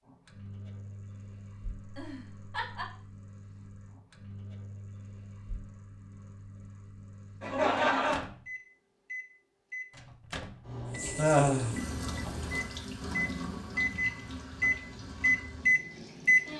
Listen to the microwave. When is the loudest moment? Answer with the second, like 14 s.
16 s.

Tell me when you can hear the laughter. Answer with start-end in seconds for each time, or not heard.
1.8-2.9, 7.4-8.2, 11.2-11.7.